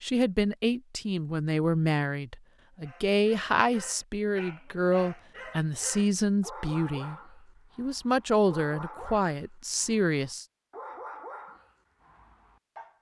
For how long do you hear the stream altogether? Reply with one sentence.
You can't hear the stream here.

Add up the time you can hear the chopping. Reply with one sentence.
You can't hear the chopping here.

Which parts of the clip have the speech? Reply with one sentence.
You can hear the speech from 0.0 to 7.2 s and from 7.8 to 10.4 s.